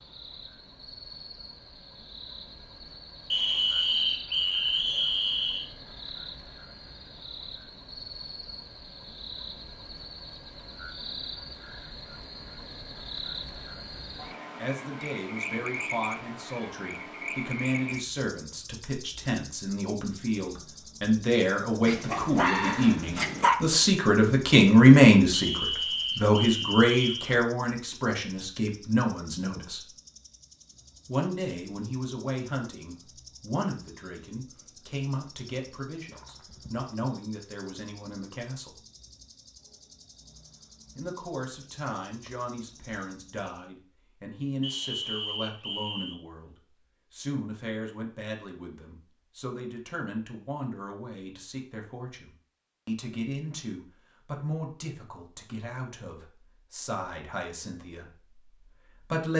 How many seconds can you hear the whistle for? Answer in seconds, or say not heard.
6 s.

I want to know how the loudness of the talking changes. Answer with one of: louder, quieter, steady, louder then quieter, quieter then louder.
louder then quieter.